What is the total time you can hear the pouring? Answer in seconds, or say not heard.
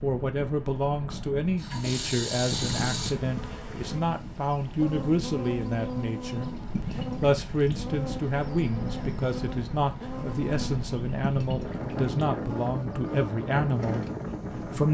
4 s.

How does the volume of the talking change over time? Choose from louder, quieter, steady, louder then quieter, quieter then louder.
steady.